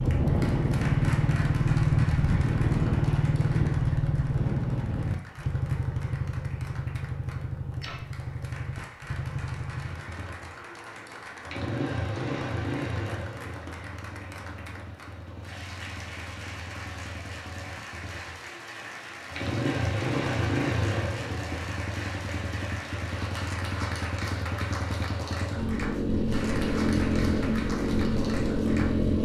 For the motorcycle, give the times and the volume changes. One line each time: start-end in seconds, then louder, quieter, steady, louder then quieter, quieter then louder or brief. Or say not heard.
0.0-29.2 quieter then louder.